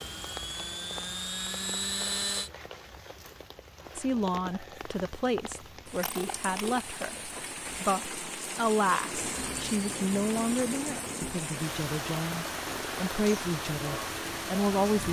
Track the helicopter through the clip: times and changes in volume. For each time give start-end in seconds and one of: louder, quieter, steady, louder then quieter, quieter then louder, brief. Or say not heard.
0.0-2.5 brief
9.1-15.0 steady.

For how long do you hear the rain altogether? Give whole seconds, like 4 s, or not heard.
15 s.